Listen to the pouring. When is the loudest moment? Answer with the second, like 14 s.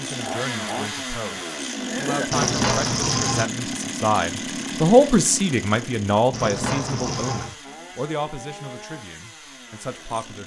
3 s.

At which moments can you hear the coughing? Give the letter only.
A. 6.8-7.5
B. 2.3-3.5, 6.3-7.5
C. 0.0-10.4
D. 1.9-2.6
D.